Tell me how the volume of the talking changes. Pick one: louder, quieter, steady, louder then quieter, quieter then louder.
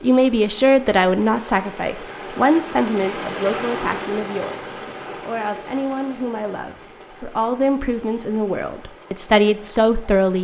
quieter then louder.